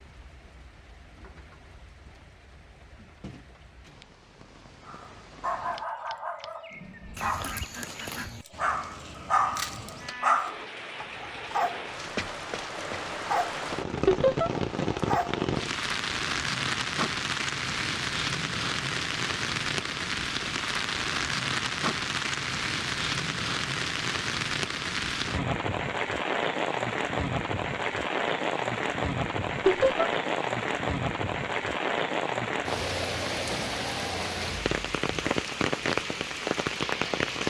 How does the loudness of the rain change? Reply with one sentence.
The loudness of the rain goes up.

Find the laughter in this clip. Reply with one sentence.
The laughter can be heard from 14.1 to 14.5 s and from 29.6 to 30.1 s.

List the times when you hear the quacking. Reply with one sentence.
You can hear the quacking from 7.2 to 8.4 s.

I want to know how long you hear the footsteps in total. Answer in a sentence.
The footsteps can't be heard in this clip.